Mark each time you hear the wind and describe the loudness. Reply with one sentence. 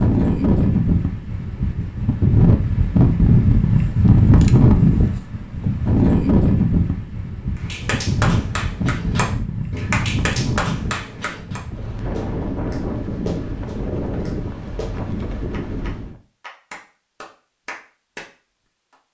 The wind can be heard from 0.0 to 16.1 s, getting quieter.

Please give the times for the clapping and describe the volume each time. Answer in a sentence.
The clapping can be heard from 7.6 to 18.2 s, getting quieter.